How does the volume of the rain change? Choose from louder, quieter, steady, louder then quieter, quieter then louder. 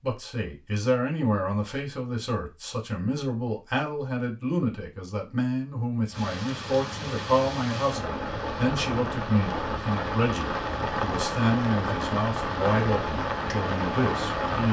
louder.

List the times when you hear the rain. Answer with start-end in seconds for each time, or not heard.
6.1-14.6.